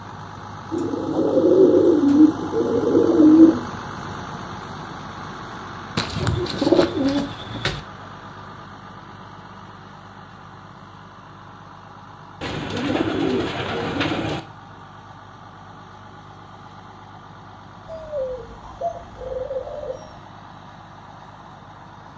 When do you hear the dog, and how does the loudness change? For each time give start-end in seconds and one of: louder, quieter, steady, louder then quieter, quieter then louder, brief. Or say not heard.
not heard.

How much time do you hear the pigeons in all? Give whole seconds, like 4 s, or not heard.
9 s.